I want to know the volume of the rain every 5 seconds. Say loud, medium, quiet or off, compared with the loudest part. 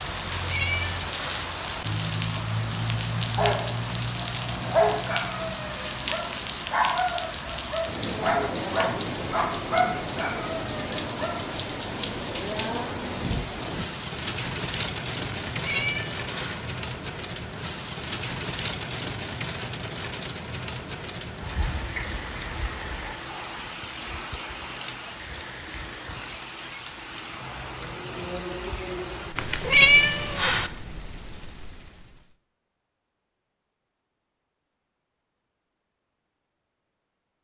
loud, loud, loud, loud, medium, medium, quiet, off.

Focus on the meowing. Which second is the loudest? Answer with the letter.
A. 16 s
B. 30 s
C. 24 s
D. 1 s
B.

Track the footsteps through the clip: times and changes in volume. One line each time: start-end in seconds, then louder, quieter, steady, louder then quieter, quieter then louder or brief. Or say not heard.
not heard.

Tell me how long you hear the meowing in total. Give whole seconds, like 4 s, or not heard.
4 s.